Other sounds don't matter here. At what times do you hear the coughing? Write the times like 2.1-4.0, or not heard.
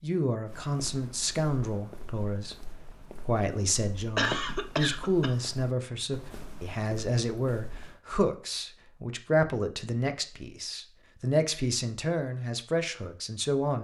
4.2-5.3.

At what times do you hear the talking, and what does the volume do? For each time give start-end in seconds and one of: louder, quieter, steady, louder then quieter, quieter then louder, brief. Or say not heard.
0.0-13.7 steady.